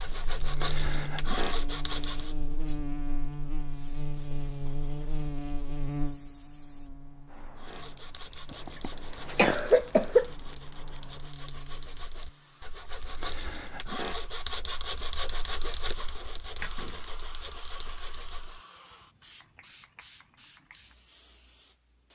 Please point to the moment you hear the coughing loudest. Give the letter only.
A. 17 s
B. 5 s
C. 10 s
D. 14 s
C.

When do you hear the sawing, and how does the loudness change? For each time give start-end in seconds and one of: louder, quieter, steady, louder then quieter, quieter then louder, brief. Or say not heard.
0.0-2.4 brief
7.5-18.6 louder then quieter.